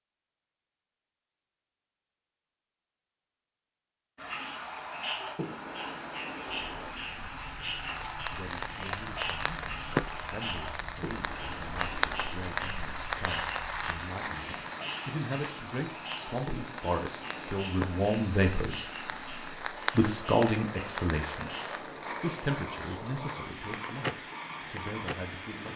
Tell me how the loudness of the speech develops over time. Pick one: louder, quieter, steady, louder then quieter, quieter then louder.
louder then quieter.